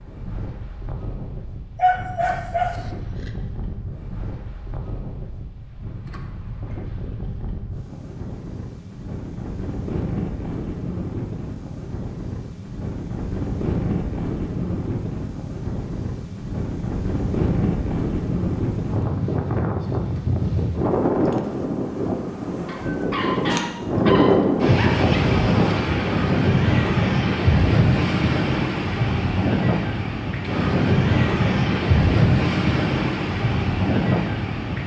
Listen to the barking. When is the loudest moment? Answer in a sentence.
The volume of the barking peaks at 2 seconds.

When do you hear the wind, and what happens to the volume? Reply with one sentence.
You can hear the wind from 0.0 to 34.8 s, getting louder.